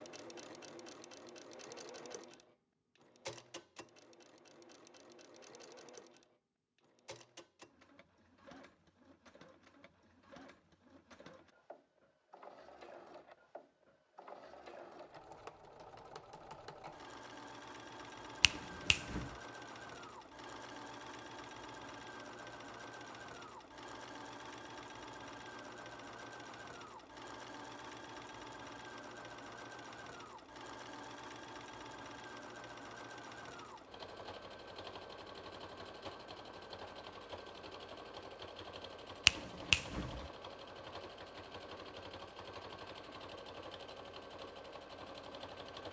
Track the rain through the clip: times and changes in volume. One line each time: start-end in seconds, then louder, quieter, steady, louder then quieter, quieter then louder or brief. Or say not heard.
not heard.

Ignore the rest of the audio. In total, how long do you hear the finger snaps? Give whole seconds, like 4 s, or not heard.
2 s.